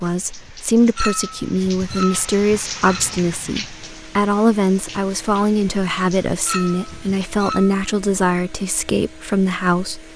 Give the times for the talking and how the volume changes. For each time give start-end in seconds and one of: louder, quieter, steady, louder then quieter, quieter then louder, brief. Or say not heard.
0.0-10.1 steady.